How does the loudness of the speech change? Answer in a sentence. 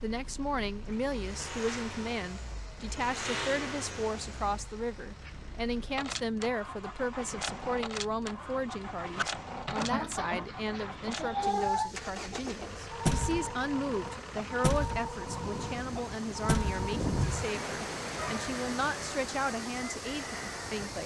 The volume of the speech stays about the same.